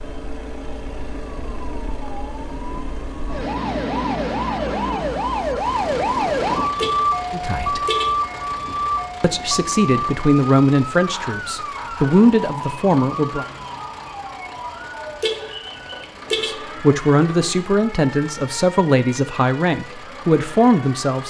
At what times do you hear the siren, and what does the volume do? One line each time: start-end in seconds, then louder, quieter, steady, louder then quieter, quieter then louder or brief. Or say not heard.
0.0-21.2 louder then quieter.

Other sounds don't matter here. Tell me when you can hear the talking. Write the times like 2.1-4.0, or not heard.
7.3-7.8, 9.2-13.4, 16.4-21.2.